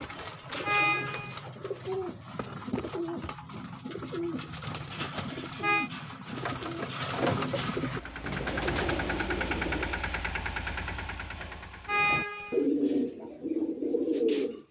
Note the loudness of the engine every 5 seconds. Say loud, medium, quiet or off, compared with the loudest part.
off, loud, loud.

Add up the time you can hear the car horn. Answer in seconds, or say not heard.
3 s.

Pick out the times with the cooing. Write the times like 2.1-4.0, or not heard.
0.0-10.1, 11.9-14.6.